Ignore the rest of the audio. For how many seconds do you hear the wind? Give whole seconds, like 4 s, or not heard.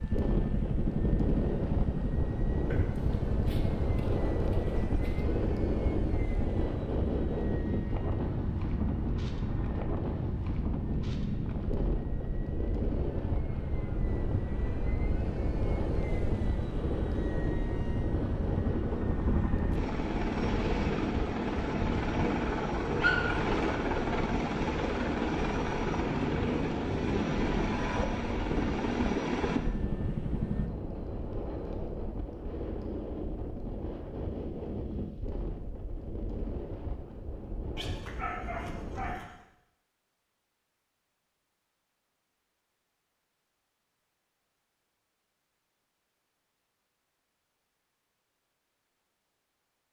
39 s.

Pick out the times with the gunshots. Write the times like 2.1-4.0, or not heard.
not heard.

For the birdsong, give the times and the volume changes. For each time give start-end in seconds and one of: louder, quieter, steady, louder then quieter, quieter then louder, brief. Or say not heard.
not heard.